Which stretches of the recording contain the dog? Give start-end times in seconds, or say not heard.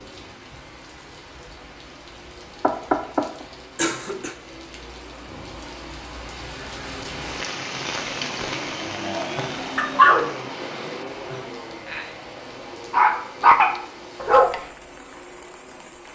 9.3-12.1, 12.9-14.6.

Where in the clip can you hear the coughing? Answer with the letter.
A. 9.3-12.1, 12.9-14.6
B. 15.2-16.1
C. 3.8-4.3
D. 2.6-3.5
C.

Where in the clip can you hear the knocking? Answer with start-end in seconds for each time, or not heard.
2.6-3.5.